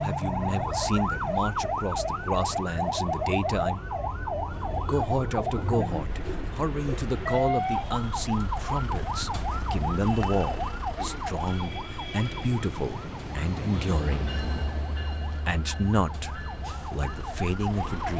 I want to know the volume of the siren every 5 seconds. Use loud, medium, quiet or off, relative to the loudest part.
loud, loud, medium, medium.